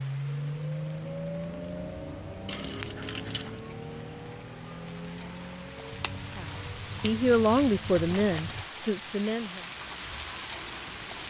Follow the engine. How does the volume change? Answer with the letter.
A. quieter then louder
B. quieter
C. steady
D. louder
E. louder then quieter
B.